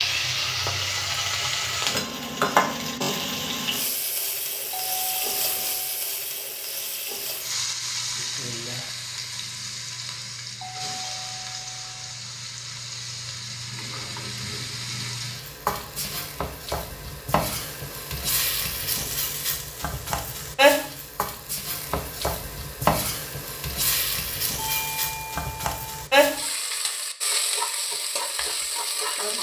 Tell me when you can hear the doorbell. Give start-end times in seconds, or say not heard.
4.7-6.0, 10.6-12.2, 24.6-26.1.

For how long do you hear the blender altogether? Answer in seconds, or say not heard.
not heard.